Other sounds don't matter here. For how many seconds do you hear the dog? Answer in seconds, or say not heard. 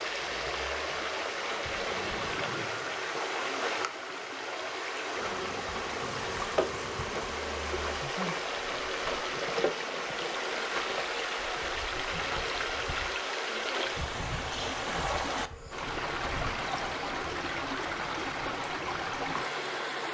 not heard.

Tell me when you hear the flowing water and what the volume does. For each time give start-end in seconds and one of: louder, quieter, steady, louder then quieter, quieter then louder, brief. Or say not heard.
0.0-20.0 steady.